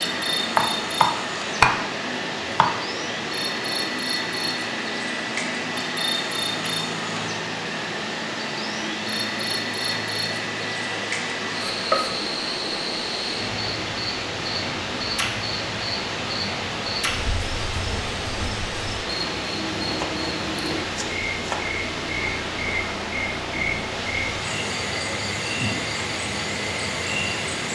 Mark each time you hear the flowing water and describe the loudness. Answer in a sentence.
You can hear the flowing water from 0.0 to 27.7 s, at a steady volume.